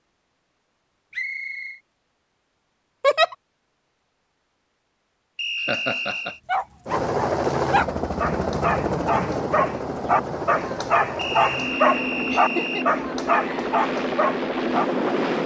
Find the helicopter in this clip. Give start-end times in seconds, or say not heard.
6.8-15.4.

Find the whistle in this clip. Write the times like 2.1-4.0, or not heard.
1.1-1.8, 5.3-6.4, 11.2-12.9.